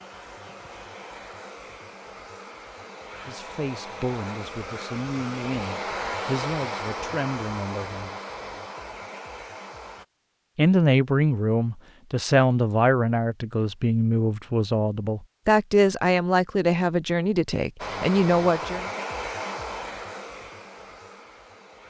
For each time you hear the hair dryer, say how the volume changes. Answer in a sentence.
You can hear the hair dryer from 0.0 to 10.1 s, getting louder then quieter; and from 17.8 to 21.8 s, getting quieter.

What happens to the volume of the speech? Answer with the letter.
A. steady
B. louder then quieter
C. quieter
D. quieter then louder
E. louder
E.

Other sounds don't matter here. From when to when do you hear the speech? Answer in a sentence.
The speech can be heard from 3.2 to 8.1 s and from 10.6 to 18.9 s.